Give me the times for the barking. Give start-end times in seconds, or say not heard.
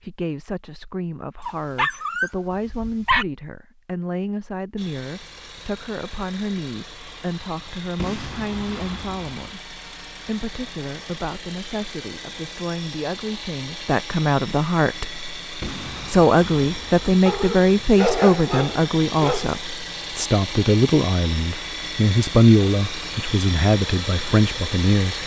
1.4-3.2, 17.2-19.6.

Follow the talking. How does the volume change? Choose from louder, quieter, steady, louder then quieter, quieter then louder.
louder.